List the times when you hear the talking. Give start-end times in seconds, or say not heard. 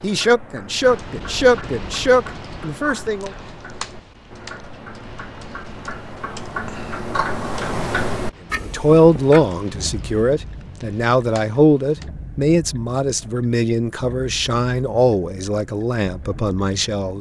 0.0-3.3, 8.7-17.1.